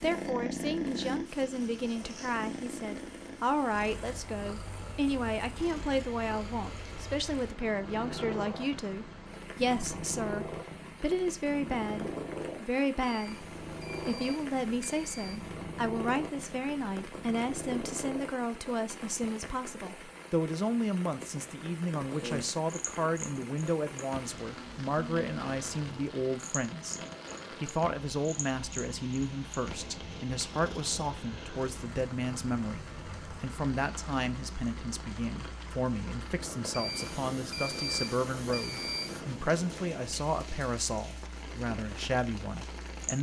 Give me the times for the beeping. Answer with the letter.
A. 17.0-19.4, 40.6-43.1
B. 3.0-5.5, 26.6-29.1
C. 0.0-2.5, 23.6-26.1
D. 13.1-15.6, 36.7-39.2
D.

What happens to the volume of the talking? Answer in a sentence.
The loudness of the talking stays about the same.